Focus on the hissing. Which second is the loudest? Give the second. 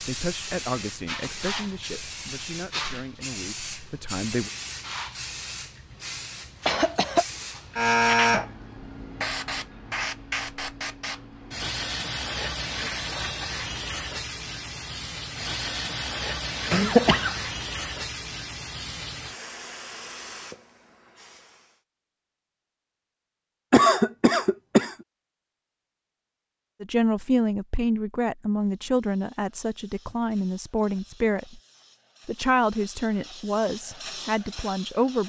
8 s.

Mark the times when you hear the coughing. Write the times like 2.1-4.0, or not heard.
6.7-7.2, 16.7-17.4, 23.7-24.9.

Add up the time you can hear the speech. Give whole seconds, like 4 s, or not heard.
12 s.